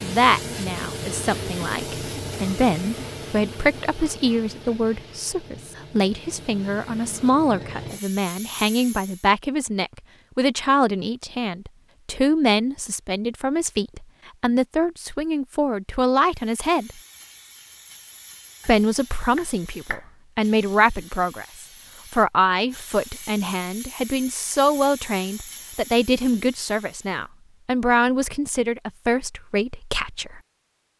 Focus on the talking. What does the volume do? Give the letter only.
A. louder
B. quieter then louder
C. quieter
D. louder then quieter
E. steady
E.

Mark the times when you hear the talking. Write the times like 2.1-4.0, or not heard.
0.0-16.9, 18.6-30.4.